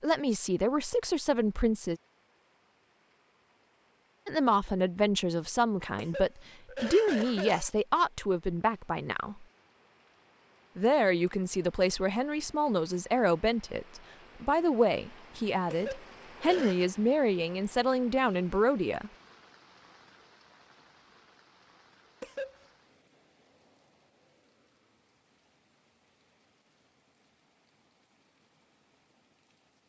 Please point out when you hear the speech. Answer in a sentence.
The speech can be heard from 0.0 to 2.0 s, from 4.2 to 9.4 s and from 10.8 to 19.1 s.